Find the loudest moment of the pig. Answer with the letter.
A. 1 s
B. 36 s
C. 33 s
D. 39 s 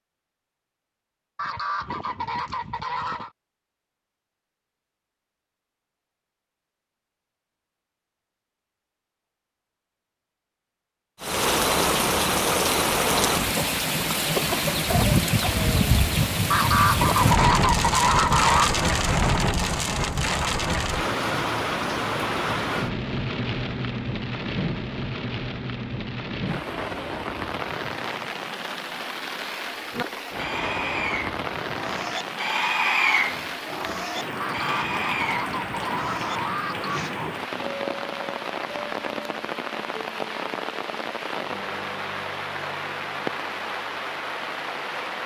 C.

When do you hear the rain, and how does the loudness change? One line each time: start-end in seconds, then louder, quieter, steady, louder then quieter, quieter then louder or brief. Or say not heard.
11.2-45.2 quieter.